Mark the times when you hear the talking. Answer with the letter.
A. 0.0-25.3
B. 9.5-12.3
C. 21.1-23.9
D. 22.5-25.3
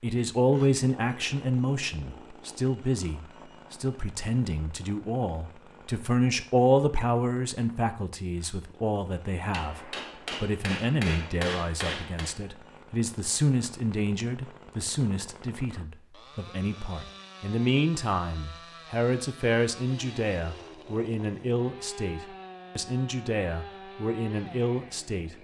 A.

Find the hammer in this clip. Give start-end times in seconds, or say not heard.
9.5-12.3.